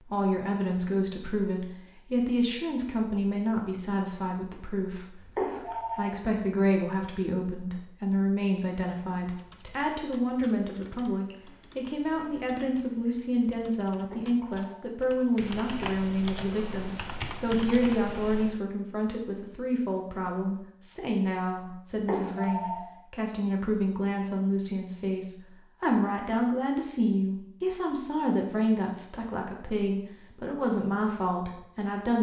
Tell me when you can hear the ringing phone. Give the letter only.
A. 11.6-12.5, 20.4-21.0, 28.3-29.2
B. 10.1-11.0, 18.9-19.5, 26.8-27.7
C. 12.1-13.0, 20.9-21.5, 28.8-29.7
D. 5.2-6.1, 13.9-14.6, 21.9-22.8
D.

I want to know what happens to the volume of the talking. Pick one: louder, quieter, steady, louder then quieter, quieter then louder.
steady.